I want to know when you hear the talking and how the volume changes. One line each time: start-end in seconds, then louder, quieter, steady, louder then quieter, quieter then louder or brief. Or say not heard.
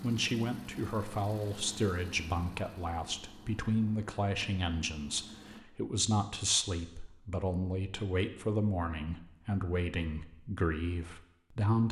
0.0-11.8 steady.